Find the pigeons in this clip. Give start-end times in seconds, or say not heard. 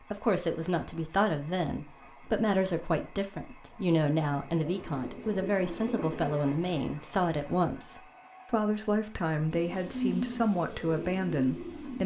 4.3-6.4, 9.5-12.0.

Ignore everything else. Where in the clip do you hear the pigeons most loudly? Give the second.
10 s.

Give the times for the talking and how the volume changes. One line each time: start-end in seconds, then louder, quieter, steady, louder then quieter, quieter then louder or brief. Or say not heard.
0.1-12.0 steady.